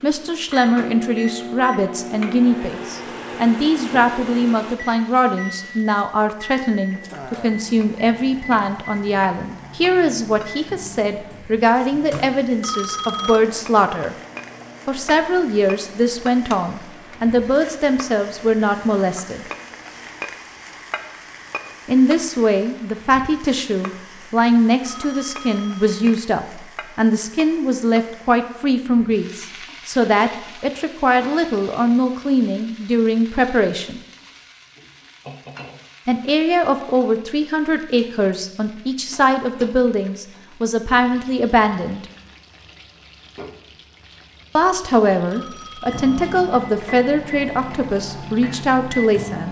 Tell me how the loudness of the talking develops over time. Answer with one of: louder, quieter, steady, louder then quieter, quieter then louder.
steady.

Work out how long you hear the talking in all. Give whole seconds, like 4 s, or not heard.
42 s.